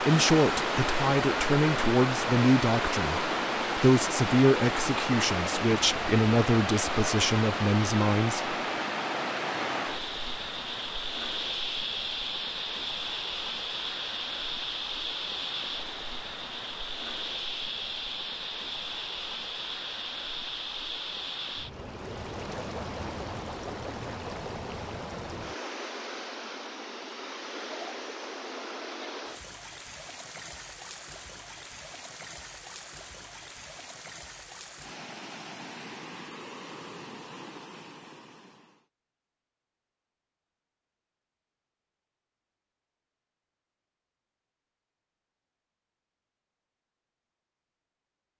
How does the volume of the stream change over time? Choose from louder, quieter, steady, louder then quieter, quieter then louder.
quieter.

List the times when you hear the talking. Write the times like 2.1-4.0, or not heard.
0.0-8.6.